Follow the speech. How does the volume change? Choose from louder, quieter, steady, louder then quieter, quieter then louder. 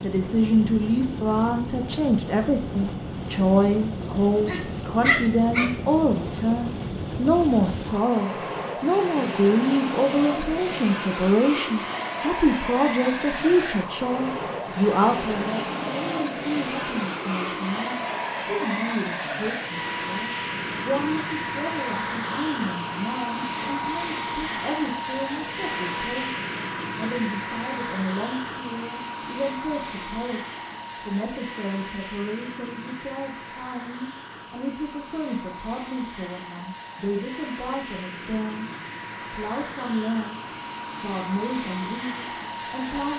quieter.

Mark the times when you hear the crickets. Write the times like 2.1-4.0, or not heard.
not heard.